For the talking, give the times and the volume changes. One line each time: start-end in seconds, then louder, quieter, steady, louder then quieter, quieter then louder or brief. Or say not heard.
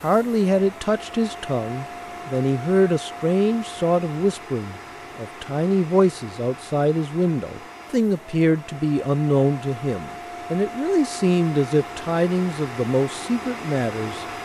0.0-14.2 steady.